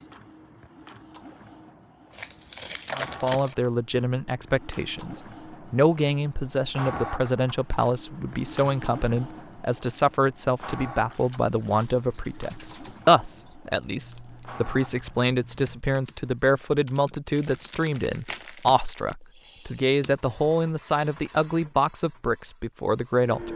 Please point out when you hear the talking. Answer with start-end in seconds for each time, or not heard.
3.0-23.5.